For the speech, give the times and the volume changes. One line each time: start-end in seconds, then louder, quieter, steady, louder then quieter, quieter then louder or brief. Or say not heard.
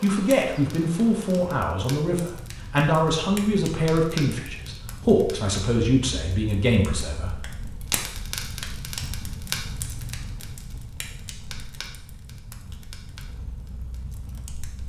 0.0-7.4 steady.